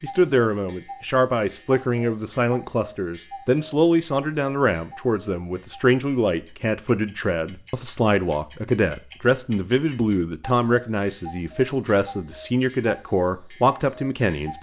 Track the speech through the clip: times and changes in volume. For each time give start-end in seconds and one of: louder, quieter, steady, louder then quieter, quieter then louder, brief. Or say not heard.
0.0-14.5 steady.